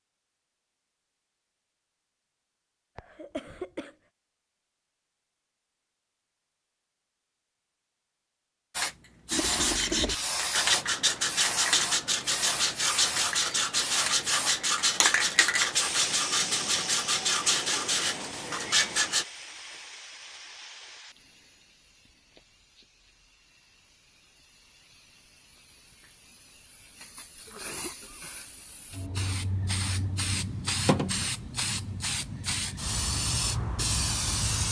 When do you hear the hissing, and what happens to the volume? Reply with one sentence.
The hissing can be heard from 8.7 to 34.6 s, getting quieter then louder.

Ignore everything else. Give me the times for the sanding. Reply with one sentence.
You can hear the sanding from 9.3 to 19.2 s.